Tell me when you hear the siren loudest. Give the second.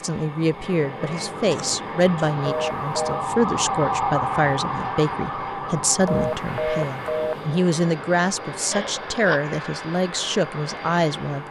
4 s.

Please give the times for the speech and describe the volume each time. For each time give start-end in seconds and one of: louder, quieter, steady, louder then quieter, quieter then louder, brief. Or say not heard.
0.0-11.4 steady.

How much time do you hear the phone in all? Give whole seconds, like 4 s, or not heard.
2 s.